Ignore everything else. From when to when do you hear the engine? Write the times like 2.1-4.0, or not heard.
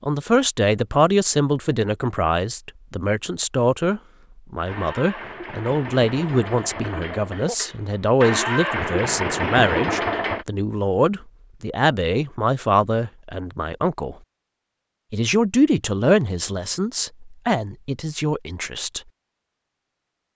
4.7-10.4.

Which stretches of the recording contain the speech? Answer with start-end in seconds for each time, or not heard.
0.0-14.2, 15.1-19.0.